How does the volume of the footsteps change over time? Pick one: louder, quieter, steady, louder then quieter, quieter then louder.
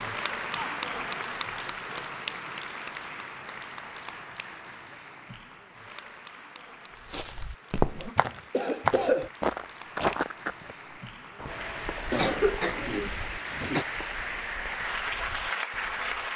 quieter.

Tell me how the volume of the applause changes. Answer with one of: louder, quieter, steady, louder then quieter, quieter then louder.
quieter then louder.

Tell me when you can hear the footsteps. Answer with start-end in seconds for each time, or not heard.
7.0-16.2.